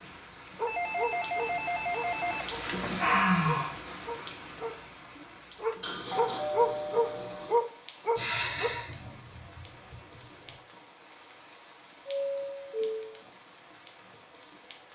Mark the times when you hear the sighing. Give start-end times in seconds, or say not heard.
2.8-3.8, 8.2-10.6.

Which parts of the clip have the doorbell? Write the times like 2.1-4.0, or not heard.
0.7-2.5, 5.8-7.7, 12.1-13.2.